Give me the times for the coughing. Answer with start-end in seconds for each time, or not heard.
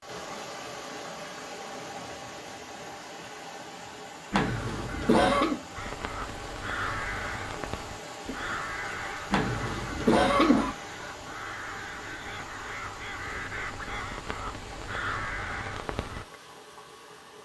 4.3-5.6, 9.3-10.8.